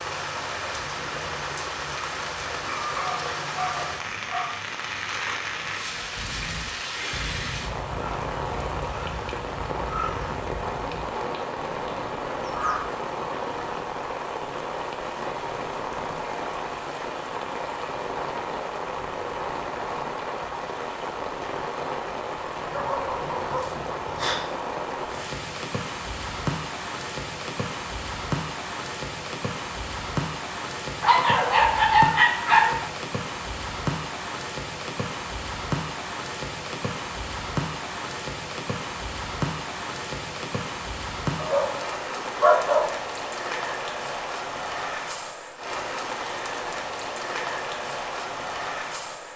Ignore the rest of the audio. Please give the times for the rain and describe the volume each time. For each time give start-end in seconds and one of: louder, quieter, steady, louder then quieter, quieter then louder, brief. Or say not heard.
0.0-49.3 steady.